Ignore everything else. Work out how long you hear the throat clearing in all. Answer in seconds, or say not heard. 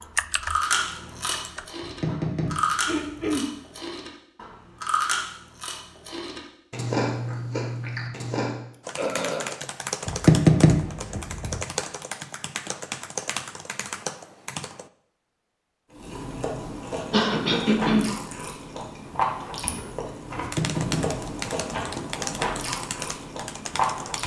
2 s.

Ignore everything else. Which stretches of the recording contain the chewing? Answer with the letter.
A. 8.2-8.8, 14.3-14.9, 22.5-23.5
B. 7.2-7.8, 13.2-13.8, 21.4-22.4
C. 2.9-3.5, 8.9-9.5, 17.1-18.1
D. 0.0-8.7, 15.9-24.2
D.